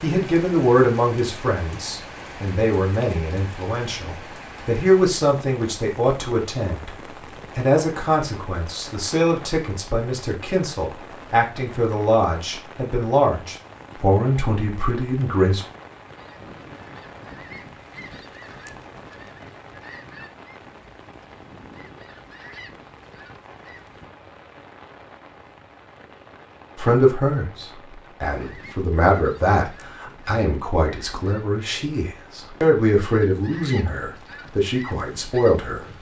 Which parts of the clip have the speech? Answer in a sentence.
You can hear the speech from 0.0 to 6.9 s, from 7.5 to 15.7 s and from 26.8 to 35.8 s.